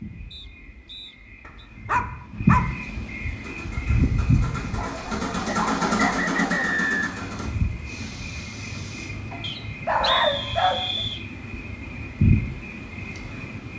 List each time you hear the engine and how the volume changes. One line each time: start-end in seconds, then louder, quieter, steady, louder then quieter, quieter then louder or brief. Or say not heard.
3.4-9.2 louder then quieter.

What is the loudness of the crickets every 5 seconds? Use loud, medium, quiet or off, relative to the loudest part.
loud, medium, loud.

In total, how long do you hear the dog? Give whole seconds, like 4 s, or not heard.
5 s.